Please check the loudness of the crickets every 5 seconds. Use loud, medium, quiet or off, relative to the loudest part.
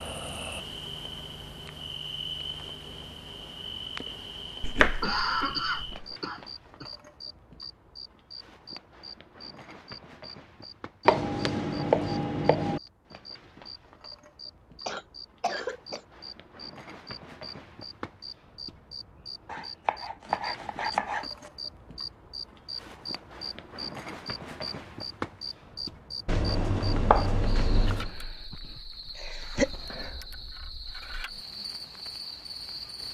loud, medium, medium, medium, loud, loud, loud.